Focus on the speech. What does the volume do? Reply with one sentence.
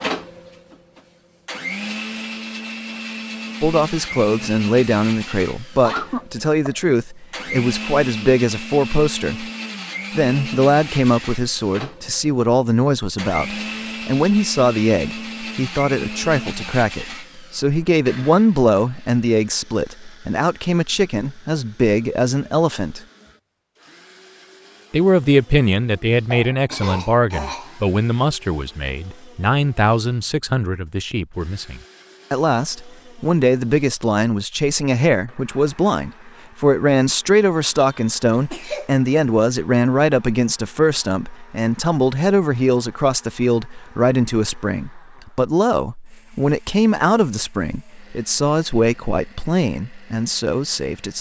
The loudness of the speech stays about the same.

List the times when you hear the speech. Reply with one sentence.
You can hear the speech from 3.6 to 9.4 s, from 10.2 to 23.0 s and from 24.9 to 51.1 s.